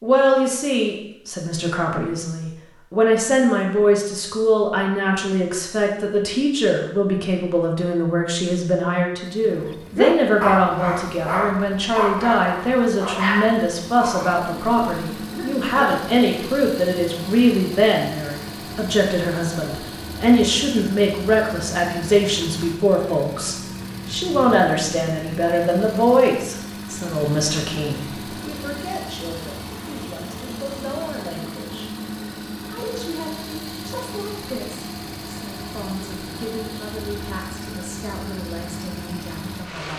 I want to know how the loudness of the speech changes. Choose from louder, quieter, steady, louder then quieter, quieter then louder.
quieter.